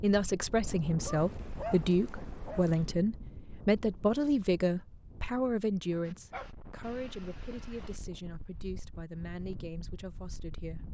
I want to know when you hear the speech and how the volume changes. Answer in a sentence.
The speech can be heard from 0.0 to 10.8 s, getting quieter.